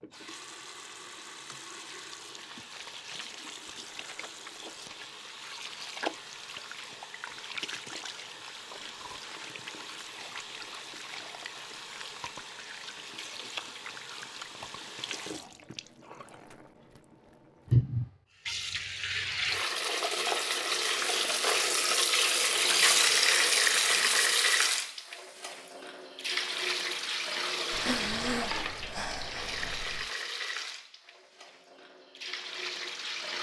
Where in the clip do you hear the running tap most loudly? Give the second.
23 s.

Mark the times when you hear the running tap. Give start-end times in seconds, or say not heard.
0.0-33.3.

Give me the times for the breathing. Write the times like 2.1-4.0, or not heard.
27.7-30.1.